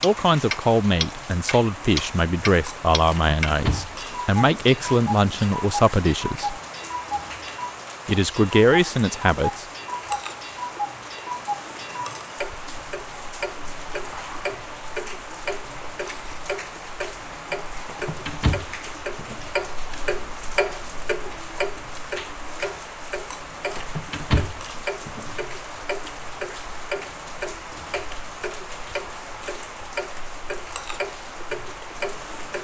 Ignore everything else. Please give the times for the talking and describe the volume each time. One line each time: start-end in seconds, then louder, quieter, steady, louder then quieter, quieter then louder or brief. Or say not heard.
0.0-6.6 steady
8.1-9.7 brief.